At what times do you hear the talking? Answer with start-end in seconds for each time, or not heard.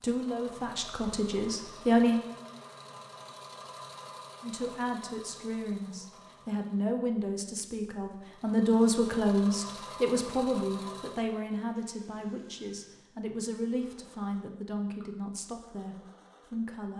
0.0-2.2, 4.4-16.9.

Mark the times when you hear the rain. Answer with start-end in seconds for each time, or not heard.
not heard.